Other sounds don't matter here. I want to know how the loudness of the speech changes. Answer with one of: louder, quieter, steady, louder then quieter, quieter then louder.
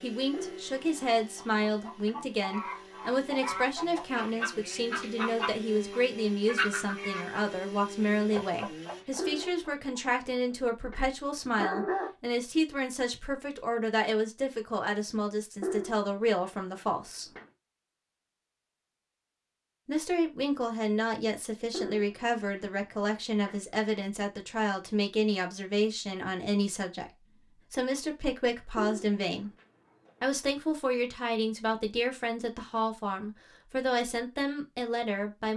steady.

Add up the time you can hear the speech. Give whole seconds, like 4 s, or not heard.
32 s.